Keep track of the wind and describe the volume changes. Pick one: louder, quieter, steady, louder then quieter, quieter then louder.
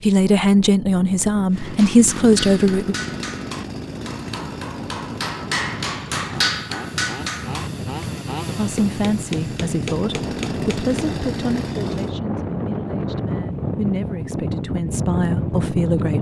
louder.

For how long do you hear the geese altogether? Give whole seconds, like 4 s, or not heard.
not heard.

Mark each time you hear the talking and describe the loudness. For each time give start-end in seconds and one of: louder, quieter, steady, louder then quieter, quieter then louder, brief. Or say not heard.
0.0-3.0 brief
8.6-16.1 quieter then louder.